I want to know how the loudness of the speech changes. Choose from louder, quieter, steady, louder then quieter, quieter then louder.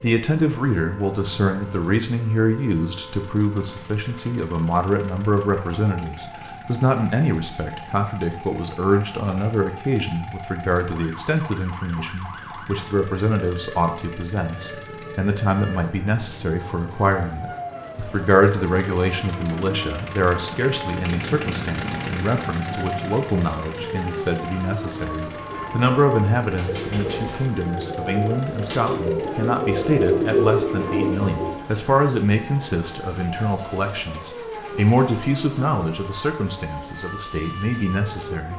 steady.